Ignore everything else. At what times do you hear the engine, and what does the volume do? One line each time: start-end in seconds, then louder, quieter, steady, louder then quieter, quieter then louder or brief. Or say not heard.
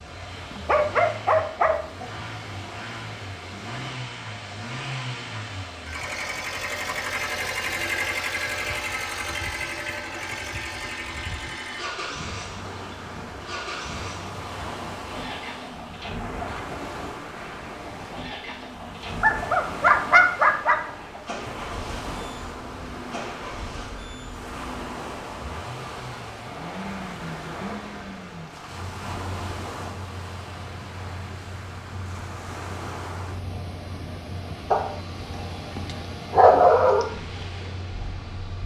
0.0-38.6 quieter.